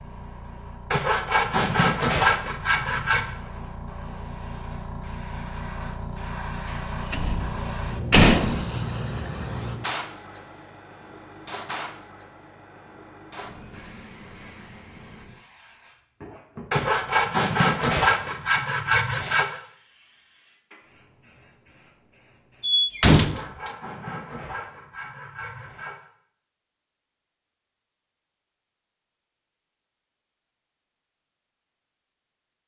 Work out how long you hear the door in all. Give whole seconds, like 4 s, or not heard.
3 s.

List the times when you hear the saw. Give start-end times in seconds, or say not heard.
0.9-3.4, 16.7-19.6, 23.1-26.0.